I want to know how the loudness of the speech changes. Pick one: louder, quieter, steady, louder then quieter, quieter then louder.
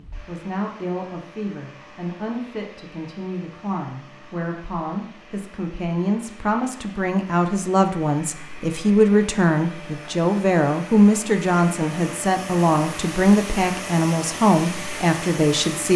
louder.